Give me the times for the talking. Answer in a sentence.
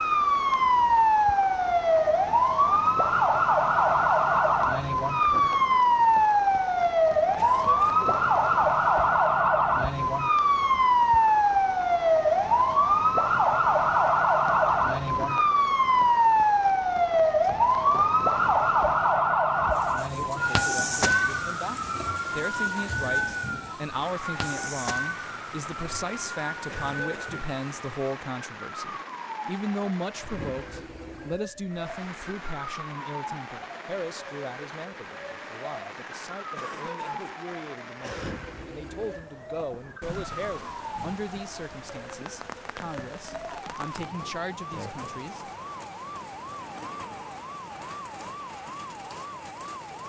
You can hear the talking from 20.1 to 45.5 s.